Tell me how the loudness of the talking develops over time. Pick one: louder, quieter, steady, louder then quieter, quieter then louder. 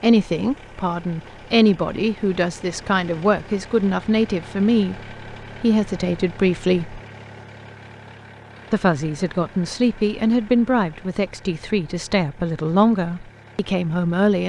steady.